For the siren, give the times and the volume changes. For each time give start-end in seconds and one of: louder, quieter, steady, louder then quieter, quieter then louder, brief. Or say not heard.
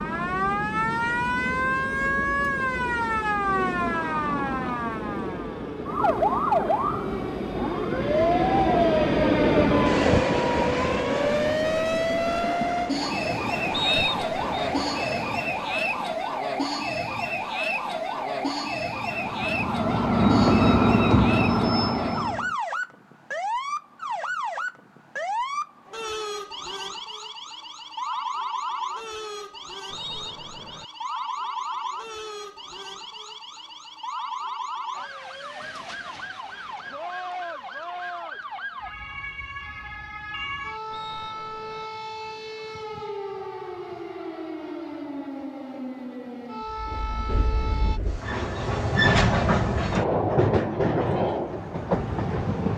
0.0-48.0 quieter.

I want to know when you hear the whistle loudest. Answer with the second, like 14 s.
14 s.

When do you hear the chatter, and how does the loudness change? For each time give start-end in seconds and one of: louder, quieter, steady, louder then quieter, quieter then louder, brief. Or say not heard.
not heard.